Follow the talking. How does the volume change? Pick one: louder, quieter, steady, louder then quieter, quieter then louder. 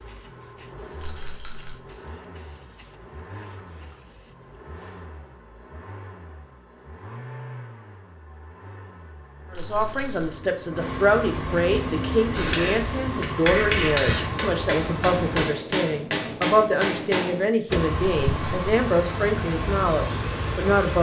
steady.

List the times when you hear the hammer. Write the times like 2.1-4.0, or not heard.
12.3-17.5.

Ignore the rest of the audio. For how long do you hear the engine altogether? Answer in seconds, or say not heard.
19 s.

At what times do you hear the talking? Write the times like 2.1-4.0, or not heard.
9.5-20.9.